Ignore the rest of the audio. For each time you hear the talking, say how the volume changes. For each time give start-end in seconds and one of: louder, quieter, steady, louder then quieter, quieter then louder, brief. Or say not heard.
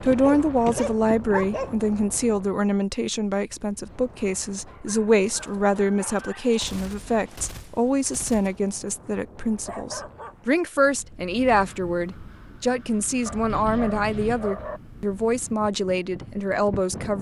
0.0-17.1 steady.